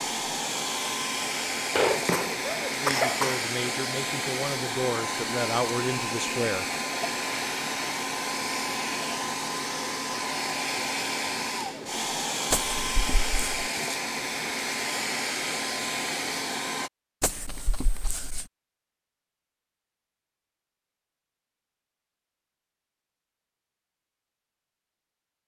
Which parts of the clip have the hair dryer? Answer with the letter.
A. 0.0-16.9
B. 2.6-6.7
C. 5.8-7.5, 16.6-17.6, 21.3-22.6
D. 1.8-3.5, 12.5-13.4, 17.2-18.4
A.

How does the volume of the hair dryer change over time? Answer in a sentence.
The loudness of the hair dryer stays about the same.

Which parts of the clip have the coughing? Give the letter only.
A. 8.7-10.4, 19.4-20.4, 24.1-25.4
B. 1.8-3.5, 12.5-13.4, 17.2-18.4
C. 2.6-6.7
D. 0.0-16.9
B.